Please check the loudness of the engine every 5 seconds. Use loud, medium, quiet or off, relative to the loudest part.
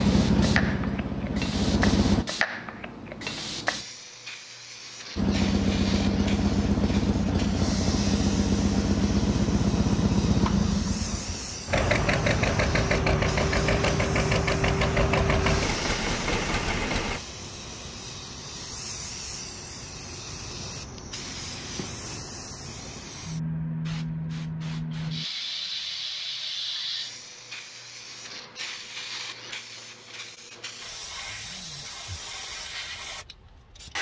loud, loud, loud, loud, off, off, off.